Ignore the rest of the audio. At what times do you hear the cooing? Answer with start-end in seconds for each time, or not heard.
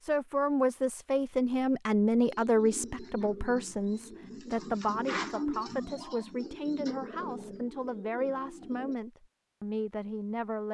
2.2-8.9.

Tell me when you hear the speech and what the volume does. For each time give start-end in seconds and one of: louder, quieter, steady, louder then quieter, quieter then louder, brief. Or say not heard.
0.0-10.6 quieter.